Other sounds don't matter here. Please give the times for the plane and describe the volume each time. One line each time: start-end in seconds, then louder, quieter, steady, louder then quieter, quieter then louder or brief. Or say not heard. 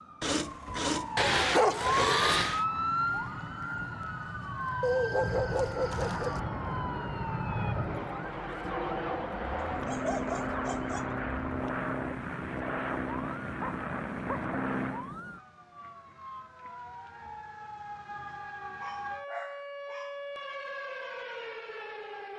1.6-15.2 louder.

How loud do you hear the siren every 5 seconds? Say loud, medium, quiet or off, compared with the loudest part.
loud, medium, medium, medium, medium.